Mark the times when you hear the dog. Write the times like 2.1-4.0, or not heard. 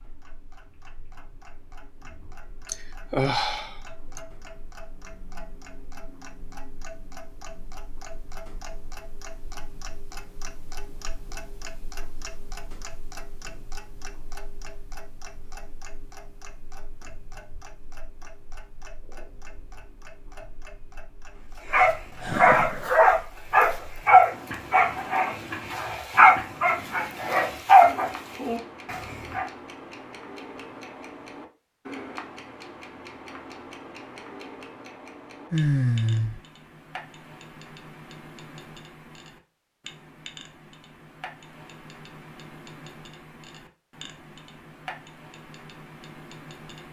21.6-29.4.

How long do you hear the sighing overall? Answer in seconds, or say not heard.
3 s.